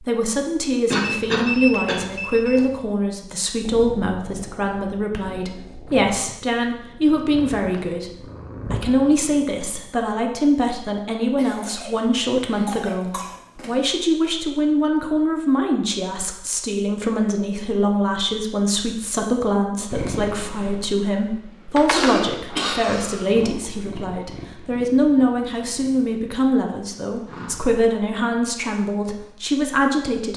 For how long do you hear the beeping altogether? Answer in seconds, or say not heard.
2 s.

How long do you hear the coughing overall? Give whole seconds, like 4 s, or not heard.
5 s.